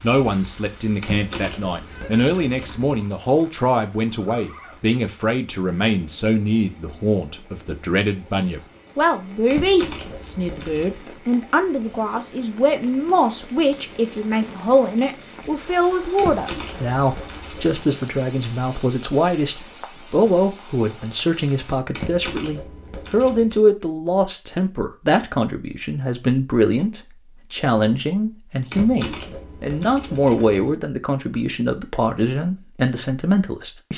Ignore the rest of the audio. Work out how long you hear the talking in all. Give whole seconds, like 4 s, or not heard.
34 s.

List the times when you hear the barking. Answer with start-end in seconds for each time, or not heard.
not heard.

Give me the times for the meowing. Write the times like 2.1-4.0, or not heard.
not heard.